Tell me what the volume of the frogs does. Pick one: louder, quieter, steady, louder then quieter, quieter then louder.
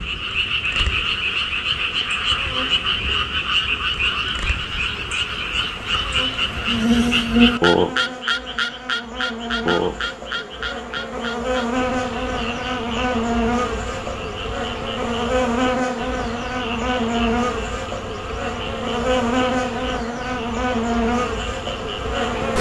quieter.